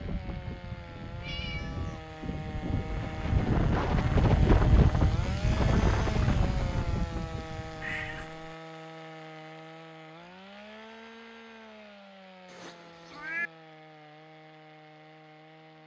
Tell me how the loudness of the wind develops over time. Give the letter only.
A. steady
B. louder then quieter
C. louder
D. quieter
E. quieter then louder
B.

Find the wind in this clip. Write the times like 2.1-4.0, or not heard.
0.0-8.2.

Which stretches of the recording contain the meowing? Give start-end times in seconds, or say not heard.
1.1-2.0, 7.7-8.6, 12.4-13.5.